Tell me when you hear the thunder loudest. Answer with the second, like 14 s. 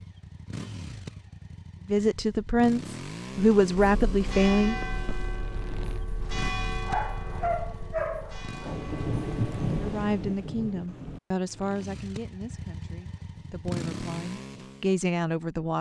10 s.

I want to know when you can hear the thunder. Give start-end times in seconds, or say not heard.
8.7-11.2.